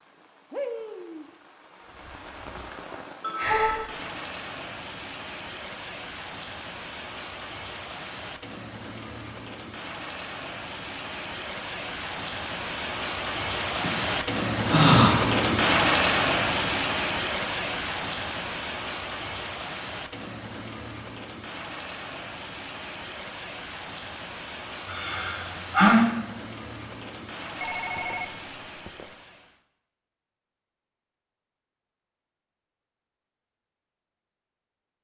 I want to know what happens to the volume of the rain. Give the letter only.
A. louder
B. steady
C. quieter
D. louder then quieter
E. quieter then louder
D.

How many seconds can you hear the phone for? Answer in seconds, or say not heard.
2 s.